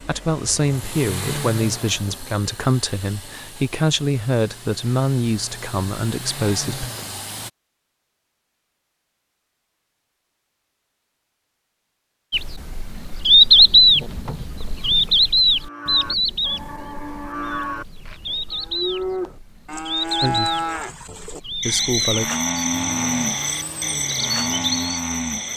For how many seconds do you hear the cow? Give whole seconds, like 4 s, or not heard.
10 s.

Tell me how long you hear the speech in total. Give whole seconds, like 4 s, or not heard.
8 s.